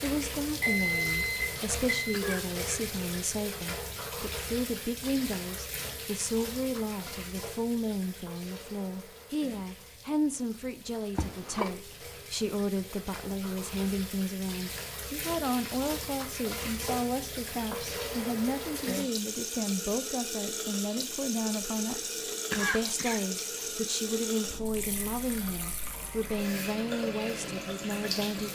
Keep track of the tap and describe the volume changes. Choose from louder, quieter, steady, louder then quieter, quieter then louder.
quieter then louder.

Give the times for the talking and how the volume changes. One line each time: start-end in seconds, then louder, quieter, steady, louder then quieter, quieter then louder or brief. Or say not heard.
0.0-28.4 steady.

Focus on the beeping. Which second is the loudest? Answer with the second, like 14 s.
1 s.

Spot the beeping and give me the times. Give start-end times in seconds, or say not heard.
0.6-2.2.